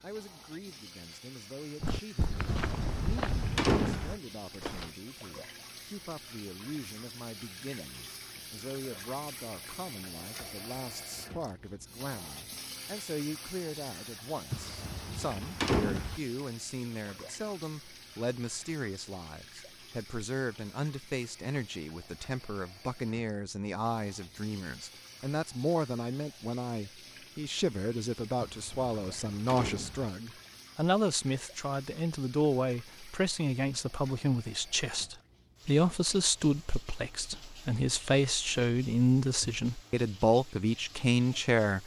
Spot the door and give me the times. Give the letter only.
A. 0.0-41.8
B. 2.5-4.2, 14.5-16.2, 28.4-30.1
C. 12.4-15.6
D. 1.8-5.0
B.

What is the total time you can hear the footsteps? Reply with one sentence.
The footsteps can be heard for 3 seconds in total.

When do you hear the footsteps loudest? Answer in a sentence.
The volume of the footsteps peaks at 3 seconds.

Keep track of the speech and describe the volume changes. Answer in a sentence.
The loudness of the speech goes up.